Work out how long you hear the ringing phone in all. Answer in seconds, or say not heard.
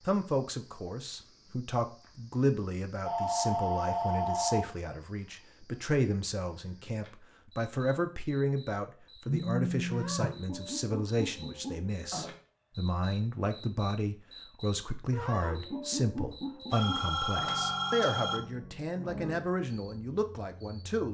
4 s.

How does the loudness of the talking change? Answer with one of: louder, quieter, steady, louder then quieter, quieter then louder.
steady.